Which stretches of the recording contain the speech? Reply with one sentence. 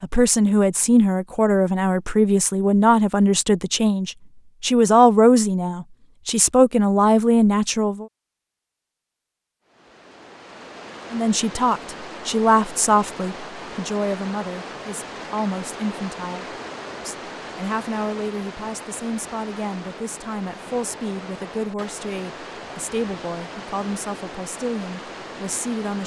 You can hear the speech from 0.0 to 8.1 s and from 11.1 to 26.0 s.